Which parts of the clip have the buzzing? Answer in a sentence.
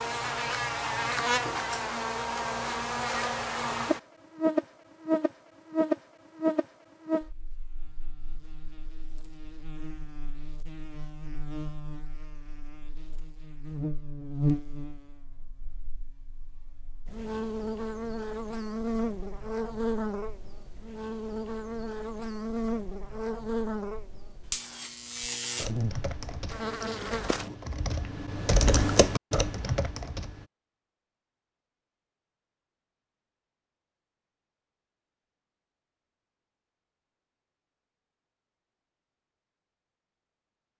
The buzzing can be heard from 0.0 to 27.6 s.